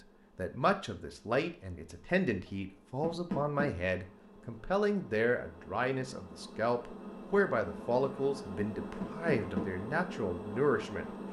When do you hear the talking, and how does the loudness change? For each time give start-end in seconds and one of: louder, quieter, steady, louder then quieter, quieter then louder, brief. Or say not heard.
0.3-11.1 steady.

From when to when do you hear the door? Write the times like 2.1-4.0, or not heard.
3.0-3.7, 9.0-9.7.